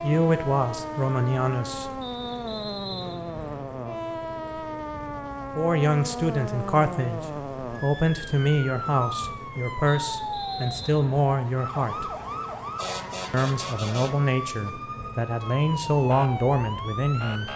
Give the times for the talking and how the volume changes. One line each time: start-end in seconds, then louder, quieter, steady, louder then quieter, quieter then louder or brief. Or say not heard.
0.0-1.9 brief
5.5-12.1 steady
13.3-17.5 quieter then louder.